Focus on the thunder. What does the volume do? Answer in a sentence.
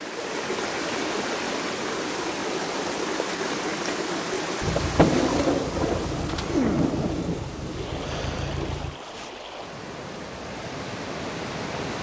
The loudness of the thunder goes down.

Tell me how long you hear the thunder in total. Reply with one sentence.
The thunder can be heard for 4 seconds in total.